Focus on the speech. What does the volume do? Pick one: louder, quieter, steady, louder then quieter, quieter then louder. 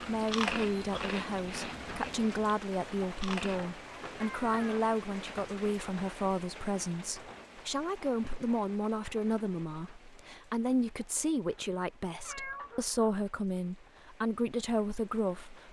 steady.